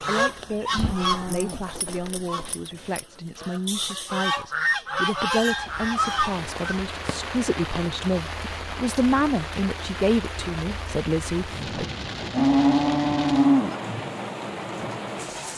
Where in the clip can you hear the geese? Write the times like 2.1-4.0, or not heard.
0.0-6.8.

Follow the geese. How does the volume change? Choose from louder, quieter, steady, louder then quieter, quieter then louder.
quieter then louder.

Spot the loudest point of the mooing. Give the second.
13 s.